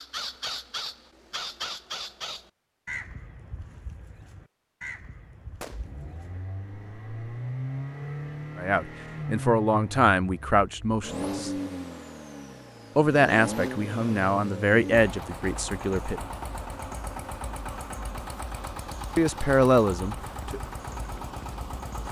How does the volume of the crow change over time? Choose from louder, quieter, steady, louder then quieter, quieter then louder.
quieter.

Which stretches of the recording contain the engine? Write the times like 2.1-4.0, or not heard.
5.7-22.0.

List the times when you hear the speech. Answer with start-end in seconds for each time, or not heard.
8.6-11.5, 12.9-16.2, 19.1-20.6.